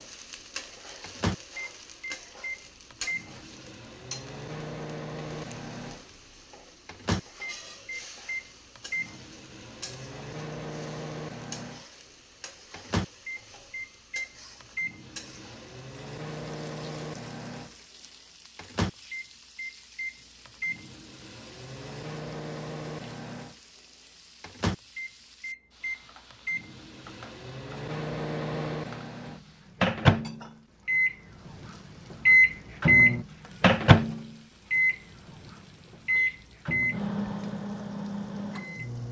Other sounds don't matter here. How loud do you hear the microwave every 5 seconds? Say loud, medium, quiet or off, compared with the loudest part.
quiet, quiet, quiet, quiet, quiet, quiet, loud, medium.